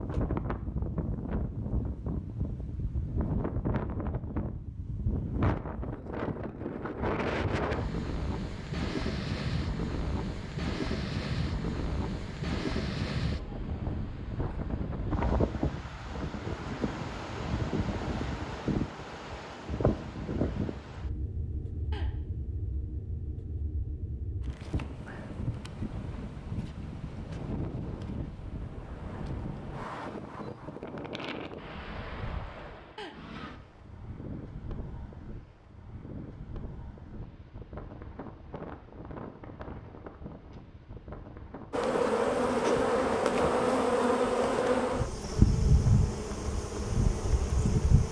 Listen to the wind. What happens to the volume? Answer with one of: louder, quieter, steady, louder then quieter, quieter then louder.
quieter.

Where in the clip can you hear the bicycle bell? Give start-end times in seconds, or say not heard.
not heard.